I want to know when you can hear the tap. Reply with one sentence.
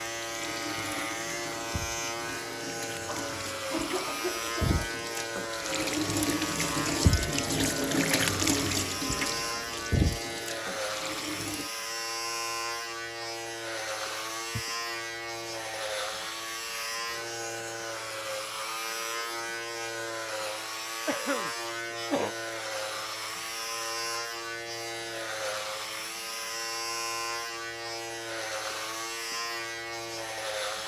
You can hear the tap from 0.0 to 11.7 s.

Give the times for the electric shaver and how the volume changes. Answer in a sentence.
The electric shaver can be heard from 0.0 to 30.8 s, at a steady volume.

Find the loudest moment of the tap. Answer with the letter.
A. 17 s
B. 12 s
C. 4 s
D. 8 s
D.